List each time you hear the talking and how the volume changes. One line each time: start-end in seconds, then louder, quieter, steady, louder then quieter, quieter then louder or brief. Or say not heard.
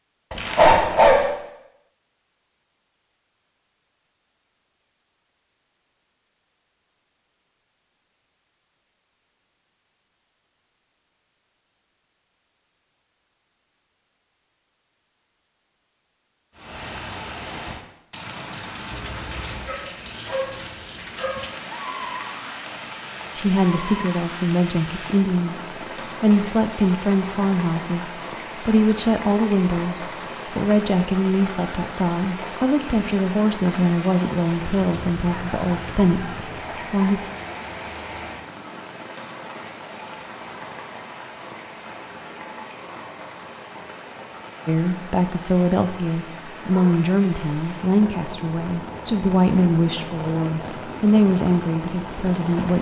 23.4-37.2 steady
44.6-52.7 steady.